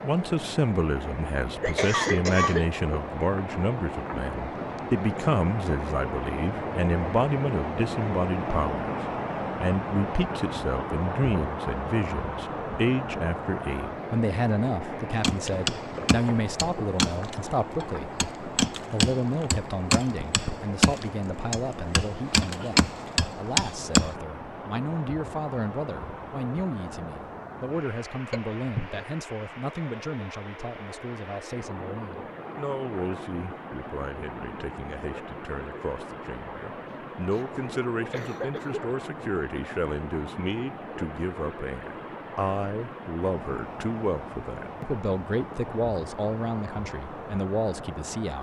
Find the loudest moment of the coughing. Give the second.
2 s.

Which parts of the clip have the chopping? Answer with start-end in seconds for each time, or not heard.
15.2-24.1.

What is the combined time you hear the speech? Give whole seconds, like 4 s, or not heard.
47 s.